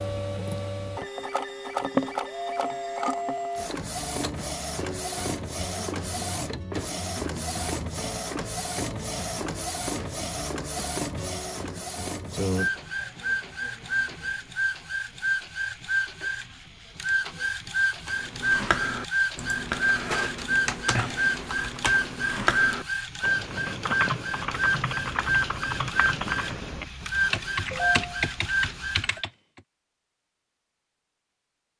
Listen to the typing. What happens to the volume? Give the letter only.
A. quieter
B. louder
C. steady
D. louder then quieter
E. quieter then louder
C.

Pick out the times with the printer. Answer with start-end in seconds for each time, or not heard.
0.0-29.2.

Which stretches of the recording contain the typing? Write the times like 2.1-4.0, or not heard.
18.1-29.6.